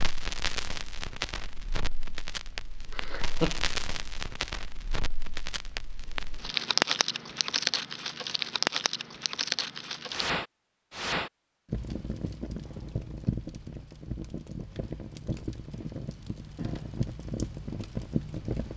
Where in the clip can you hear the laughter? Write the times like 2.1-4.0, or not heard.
2.9-3.6.